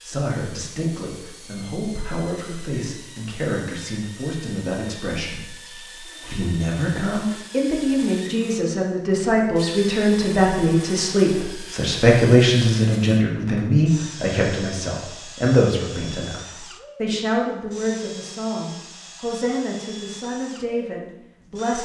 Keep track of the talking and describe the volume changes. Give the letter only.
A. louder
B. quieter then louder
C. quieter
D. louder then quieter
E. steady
D.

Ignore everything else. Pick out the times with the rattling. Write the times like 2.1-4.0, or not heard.
5.5-6.0.